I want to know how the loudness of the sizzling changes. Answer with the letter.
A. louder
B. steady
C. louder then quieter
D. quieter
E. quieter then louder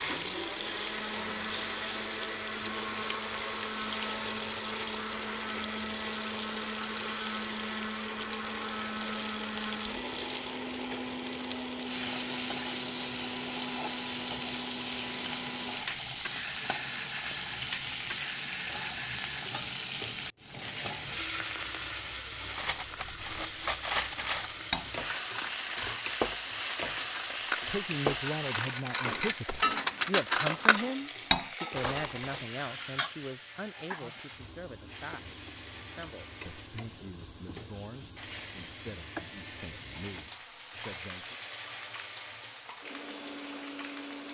D.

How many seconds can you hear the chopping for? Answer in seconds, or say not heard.
not heard.